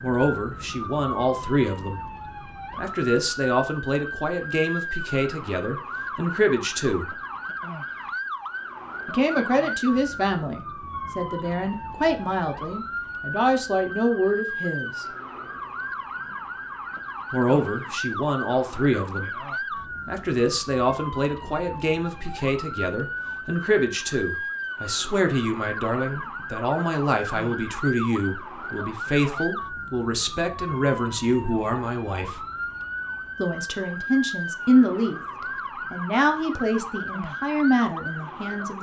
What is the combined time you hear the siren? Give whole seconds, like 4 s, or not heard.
39 s.